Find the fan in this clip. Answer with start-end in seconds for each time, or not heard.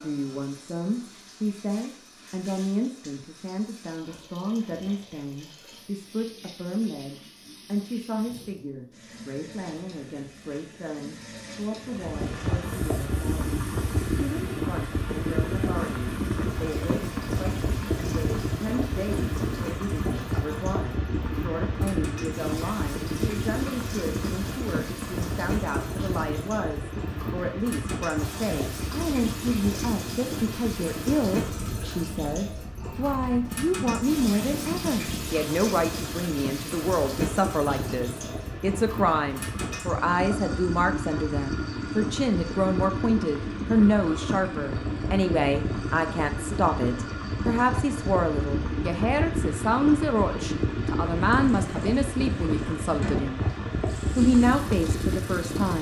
11.9-55.7.